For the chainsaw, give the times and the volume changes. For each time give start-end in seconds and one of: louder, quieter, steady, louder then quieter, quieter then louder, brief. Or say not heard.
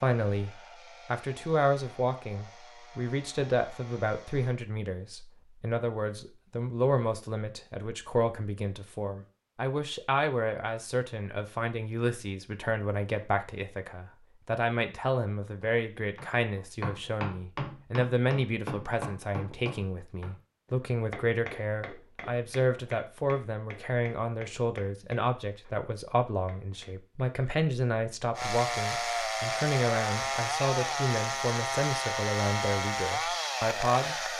0.0-4.5 steady
28.4-34.3 steady.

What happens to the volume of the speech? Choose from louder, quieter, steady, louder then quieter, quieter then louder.
steady.